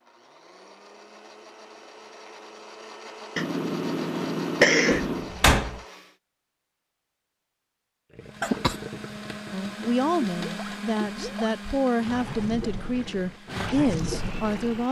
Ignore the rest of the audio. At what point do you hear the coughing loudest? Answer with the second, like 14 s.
5 s.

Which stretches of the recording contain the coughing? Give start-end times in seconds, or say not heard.
3.4-5.3, 8.4-8.8.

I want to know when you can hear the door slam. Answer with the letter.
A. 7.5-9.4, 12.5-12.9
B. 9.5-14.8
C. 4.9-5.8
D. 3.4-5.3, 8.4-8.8
C.